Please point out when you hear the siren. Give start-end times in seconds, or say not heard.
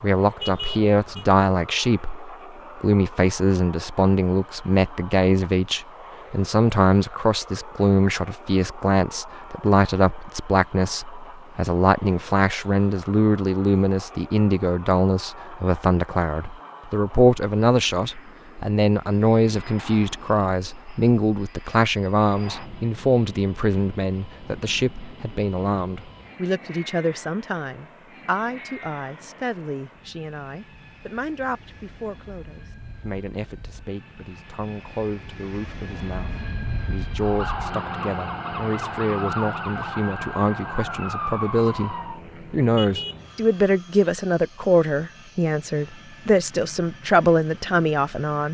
37.1-42.2.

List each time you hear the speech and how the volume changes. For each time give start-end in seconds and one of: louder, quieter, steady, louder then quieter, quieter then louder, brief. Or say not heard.
0.0-48.4 quieter then louder.